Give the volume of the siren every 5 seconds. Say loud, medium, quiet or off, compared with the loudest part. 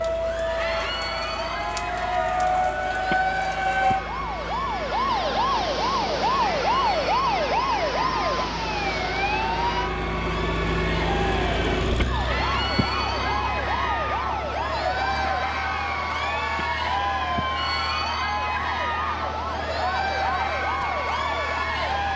loud, loud, medium, medium, medium.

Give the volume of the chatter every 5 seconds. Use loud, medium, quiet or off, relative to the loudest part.
medium, medium, loud, loud, loud.